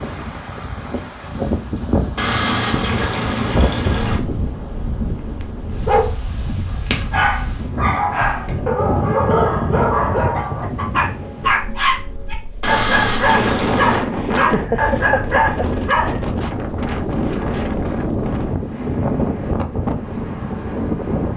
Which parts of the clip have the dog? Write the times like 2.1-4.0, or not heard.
5.8-16.2.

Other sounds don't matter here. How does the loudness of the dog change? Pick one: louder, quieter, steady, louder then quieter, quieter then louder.
steady.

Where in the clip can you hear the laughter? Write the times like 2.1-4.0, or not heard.
14.3-15.7.